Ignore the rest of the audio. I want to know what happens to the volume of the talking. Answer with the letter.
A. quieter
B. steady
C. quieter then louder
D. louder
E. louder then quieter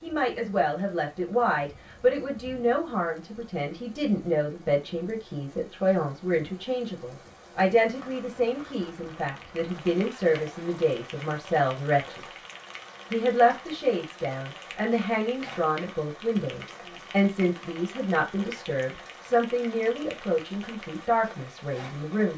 B.